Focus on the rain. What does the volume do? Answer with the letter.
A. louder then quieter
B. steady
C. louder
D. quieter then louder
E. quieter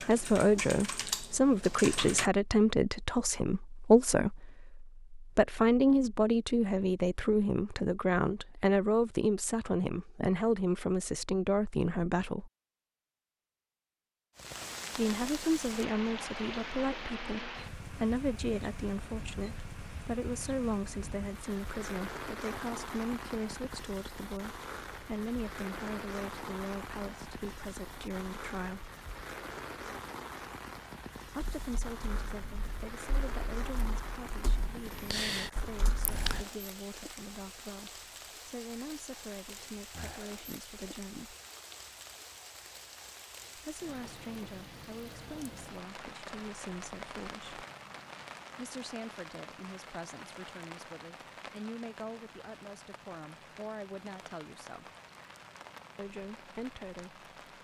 E.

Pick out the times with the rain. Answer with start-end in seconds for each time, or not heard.
14.3-57.6.